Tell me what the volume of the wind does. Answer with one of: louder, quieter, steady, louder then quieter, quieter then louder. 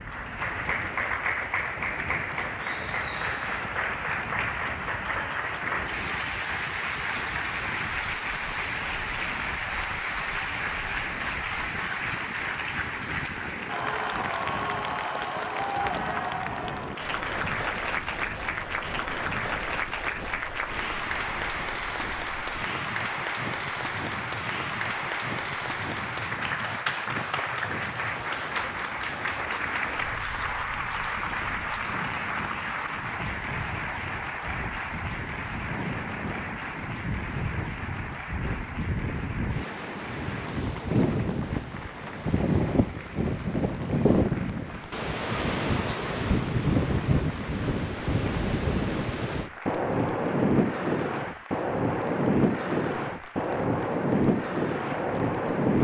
louder.